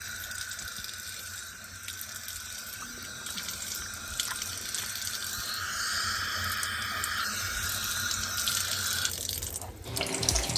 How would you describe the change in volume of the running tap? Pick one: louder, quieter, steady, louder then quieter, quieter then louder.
louder.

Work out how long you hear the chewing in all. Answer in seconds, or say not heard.
2 s.